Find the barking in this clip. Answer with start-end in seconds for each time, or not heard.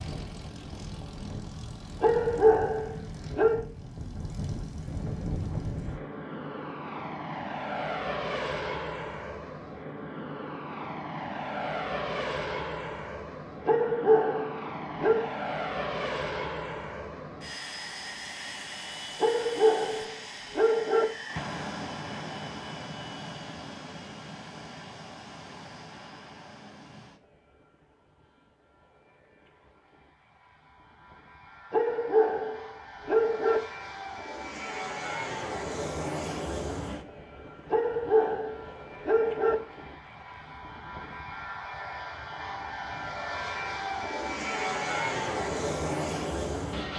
2.0-3.6, 13.7-15.3, 19.2-21.1, 31.7-33.6, 37.7-39.5.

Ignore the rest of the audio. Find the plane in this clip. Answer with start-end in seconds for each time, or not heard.
0.0-46.9.